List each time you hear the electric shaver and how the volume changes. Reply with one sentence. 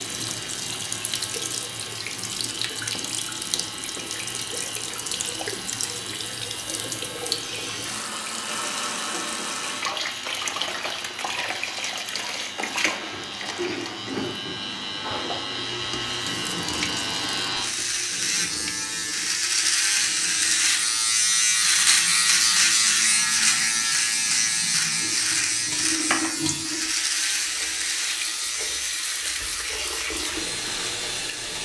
You can hear the electric shaver from 0.0 to 31.6 s, getting louder then quieter.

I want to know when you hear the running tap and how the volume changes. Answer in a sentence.
You can hear the running tap from 0.0 to 31.6 s, getting quieter then louder.